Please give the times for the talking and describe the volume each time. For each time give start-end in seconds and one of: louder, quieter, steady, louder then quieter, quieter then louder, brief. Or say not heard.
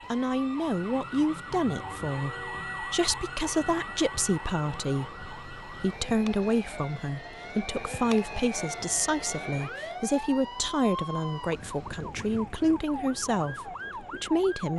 0.1-14.7 steady.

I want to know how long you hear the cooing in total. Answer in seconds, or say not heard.
not heard.